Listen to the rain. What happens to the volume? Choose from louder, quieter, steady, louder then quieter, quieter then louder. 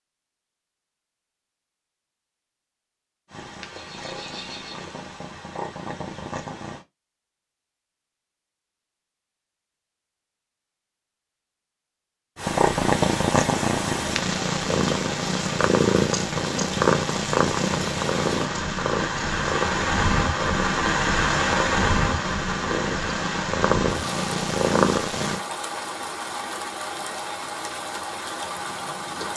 louder then quieter.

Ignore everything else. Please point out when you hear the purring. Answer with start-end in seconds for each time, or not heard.
3.3-6.8, 12.3-25.4.